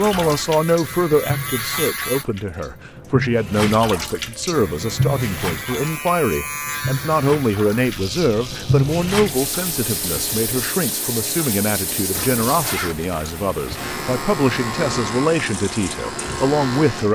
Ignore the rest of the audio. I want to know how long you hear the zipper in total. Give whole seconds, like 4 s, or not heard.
2 s.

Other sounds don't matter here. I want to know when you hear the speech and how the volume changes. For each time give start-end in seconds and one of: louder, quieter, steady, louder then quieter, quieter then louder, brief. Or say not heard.
0.0-17.1 steady.